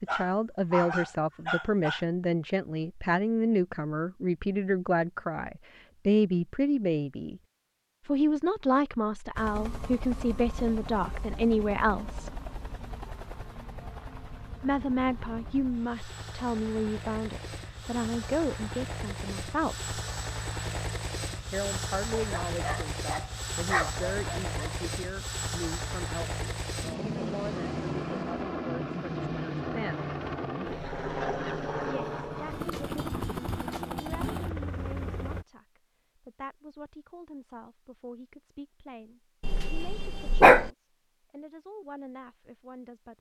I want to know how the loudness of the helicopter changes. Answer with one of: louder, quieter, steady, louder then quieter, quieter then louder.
louder.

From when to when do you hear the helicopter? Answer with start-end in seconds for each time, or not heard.
9.3-35.5.